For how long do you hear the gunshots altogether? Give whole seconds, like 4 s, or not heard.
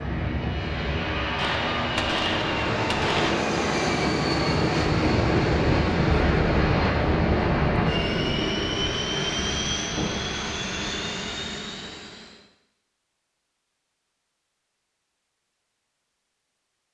2 s.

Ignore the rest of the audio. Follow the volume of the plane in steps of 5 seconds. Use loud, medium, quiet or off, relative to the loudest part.
loud, loud, medium, off.